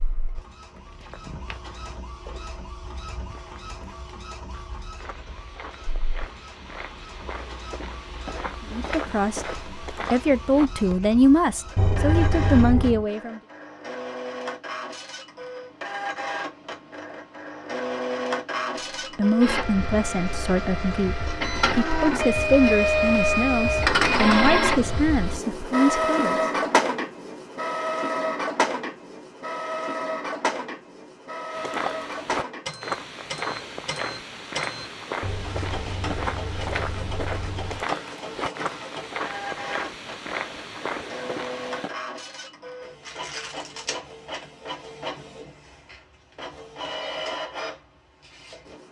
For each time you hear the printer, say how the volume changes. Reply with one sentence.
The printer can be heard from 0.0 to 48.8 s, getting louder then quieter.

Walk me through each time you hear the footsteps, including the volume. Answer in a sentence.
You can hear the footsteps from 0.7 to 11.1 s, getting quieter then louder; and from 31.5 to 42.0 s, at a steady volume.